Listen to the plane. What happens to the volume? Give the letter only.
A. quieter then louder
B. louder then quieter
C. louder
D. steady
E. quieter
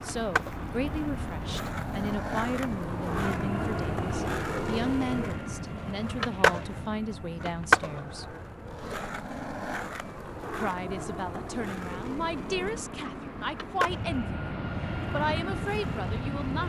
A.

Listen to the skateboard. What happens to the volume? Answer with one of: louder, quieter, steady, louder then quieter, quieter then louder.
louder then quieter.